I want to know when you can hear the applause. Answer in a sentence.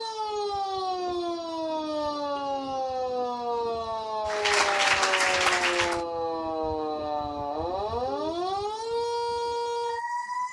You can hear the applause from 4.2 to 6.0 s.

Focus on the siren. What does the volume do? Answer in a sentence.
The loudness of the siren stays about the same.